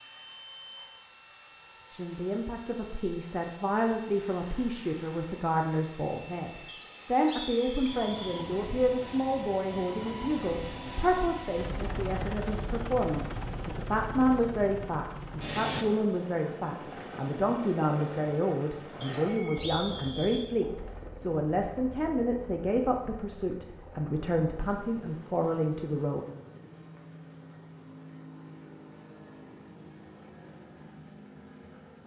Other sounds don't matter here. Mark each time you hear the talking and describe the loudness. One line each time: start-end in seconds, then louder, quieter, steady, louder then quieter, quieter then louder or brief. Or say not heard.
1.9-26.2 steady.